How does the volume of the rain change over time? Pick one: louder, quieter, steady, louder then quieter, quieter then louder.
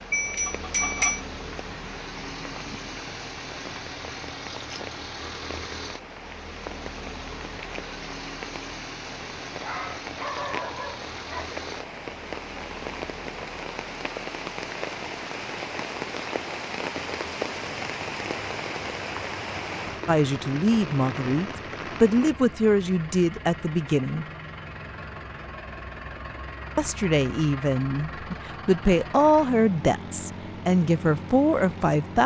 louder.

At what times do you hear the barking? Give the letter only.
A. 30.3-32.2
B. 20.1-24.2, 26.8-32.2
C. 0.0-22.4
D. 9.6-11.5
D.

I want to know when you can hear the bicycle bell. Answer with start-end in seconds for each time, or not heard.
0.1-1.2.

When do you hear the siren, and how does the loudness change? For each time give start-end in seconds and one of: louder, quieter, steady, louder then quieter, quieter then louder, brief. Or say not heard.
not heard.